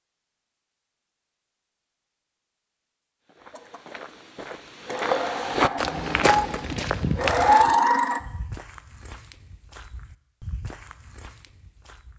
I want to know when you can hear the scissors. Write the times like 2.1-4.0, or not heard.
not heard.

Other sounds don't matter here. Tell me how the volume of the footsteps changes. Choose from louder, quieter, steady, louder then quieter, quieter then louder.
louder then quieter.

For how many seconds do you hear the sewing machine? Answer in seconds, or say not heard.
5 s.